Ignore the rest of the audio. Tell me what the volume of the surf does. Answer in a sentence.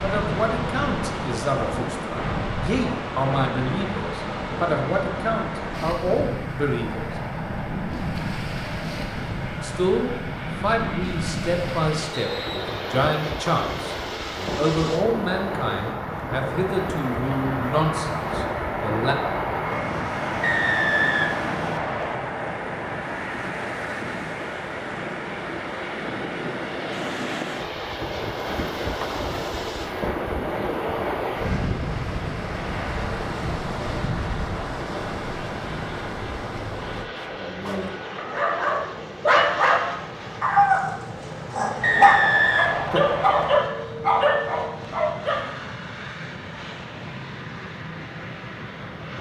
The volume of the surf stays about the same.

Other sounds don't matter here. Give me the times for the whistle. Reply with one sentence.
You can hear the whistle from 12.2 to 12.8 s, from 20.4 to 22.1 s and from 41.8 to 43.5 s.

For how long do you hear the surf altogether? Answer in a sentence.
You can hear the surf for 37 seconds altogether.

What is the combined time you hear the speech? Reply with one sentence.
You can hear the speech for 17 seconds altogether.